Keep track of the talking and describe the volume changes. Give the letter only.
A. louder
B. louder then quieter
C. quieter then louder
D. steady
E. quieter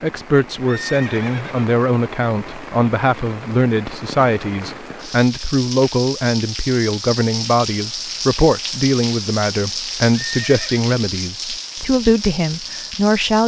D.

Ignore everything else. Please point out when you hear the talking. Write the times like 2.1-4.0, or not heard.
0.0-13.4.